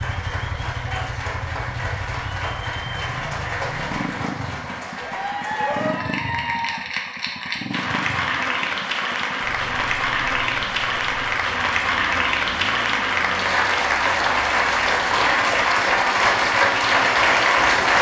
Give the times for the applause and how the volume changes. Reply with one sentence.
You can hear the applause from 0.0 to 17.9 s, getting louder.